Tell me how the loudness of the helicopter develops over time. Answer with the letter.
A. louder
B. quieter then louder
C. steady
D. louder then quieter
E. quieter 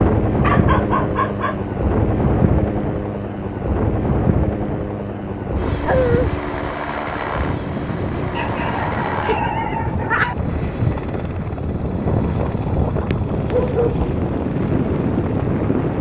E.